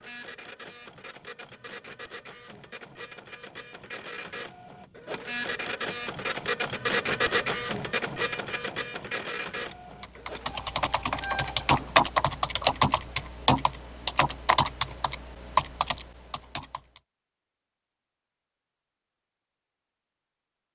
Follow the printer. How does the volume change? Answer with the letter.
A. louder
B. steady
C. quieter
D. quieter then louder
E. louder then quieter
E.